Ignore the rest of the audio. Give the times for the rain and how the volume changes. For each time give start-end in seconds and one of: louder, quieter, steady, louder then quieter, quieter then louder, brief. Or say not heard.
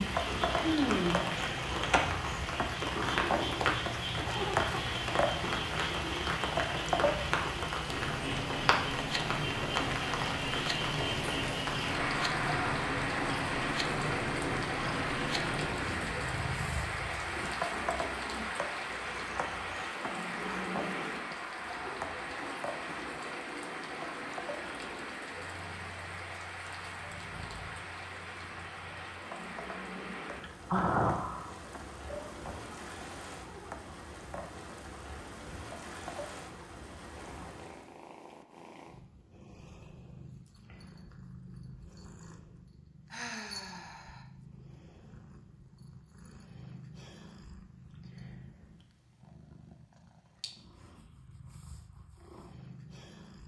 0.0-38.0 quieter.